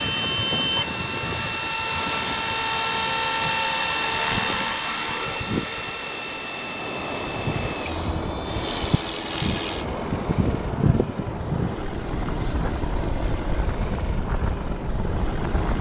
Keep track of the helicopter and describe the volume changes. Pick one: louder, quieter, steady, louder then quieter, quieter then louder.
quieter.